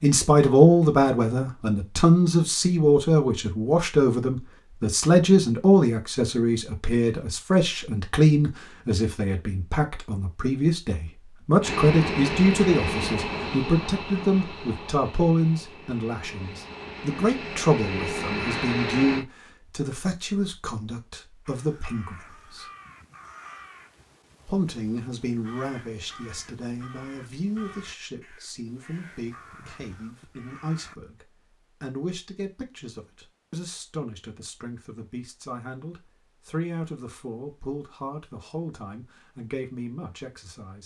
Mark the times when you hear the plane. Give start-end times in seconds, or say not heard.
11.6-19.2.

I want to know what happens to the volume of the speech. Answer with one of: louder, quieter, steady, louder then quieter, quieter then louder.
quieter.